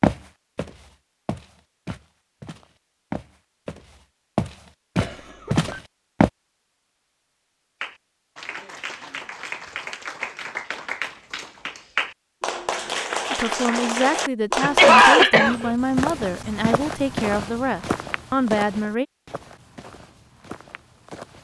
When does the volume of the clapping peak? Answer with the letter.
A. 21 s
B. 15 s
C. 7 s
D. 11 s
B.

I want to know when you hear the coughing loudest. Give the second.
15 s.